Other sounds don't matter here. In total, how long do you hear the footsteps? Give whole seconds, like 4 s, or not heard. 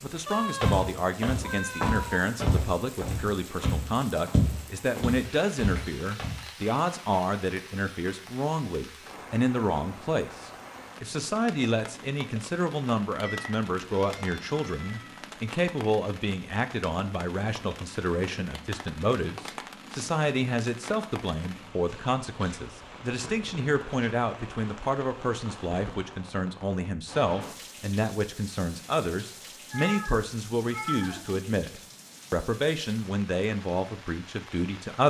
6 s.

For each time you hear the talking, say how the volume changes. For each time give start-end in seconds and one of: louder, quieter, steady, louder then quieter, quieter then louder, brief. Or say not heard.
0.0-35.0 steady.